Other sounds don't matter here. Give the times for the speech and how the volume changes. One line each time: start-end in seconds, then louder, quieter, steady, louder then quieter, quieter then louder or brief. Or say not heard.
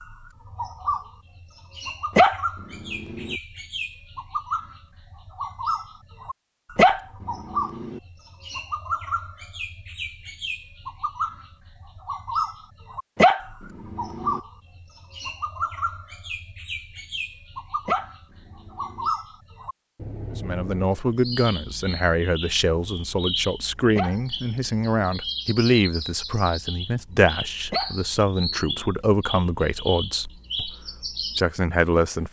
20.4-30.7 steady
31.4-32.2 brief.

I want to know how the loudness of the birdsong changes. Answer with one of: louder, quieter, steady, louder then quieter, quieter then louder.
steady.